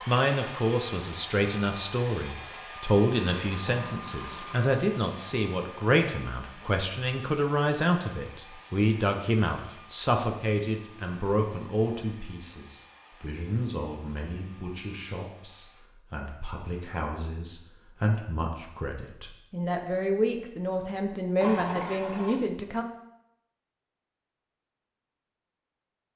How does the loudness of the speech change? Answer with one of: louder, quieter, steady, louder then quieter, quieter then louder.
quieter then louder.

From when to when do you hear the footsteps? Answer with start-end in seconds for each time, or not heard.
not heard.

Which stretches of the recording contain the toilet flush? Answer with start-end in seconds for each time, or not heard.
3.2-4.8, 21.4-22.4.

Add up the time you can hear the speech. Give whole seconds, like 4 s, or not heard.
23 s.